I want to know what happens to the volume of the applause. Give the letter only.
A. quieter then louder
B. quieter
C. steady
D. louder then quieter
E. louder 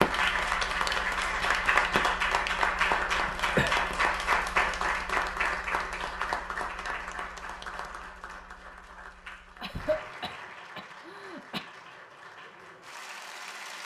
B.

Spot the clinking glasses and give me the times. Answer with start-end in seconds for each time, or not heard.
not heard.